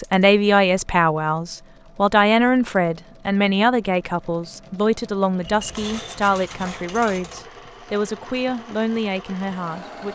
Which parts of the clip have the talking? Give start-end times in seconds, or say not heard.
0.0-10.1.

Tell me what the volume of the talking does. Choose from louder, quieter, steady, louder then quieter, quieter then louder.
quieter.